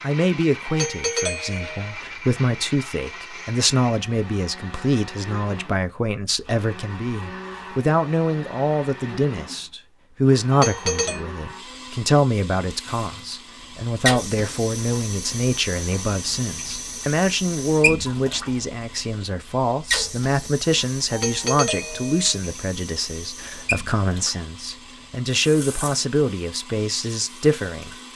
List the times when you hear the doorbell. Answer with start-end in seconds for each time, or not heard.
0.7-1.9, 10.5-11.2, 21.1-22.4.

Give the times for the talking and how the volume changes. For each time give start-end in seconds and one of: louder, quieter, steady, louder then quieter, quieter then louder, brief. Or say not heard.
0.0-27.9 steady.